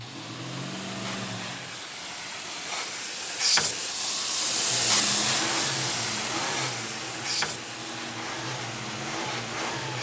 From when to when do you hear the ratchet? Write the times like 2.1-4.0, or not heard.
not heard.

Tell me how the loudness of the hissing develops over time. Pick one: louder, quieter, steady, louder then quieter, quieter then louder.
louder then quieter.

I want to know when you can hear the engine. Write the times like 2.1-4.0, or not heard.
0.0-1.8, 4.4-9.9.